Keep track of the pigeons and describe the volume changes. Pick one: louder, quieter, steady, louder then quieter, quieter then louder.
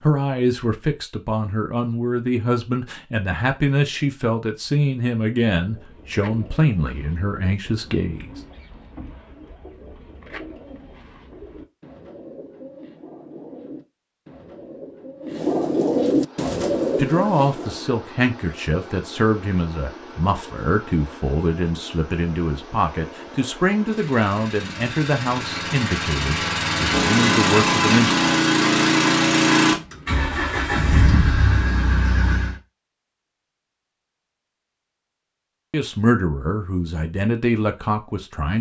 louder.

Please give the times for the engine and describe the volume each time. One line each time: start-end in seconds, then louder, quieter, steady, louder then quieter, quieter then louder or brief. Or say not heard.
16.1-32.6 louder.